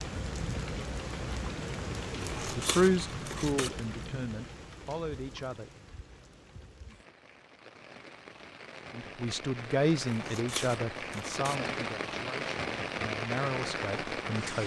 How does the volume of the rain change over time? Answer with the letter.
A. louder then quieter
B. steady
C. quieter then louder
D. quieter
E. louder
C.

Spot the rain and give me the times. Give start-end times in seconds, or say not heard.
0.0-14.6.